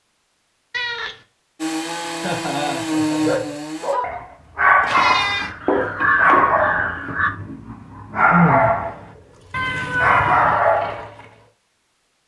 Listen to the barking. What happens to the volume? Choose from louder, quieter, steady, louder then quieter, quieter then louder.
quieter then louder.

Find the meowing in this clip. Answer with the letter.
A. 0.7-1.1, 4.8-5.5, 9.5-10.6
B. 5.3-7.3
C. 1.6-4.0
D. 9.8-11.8
A.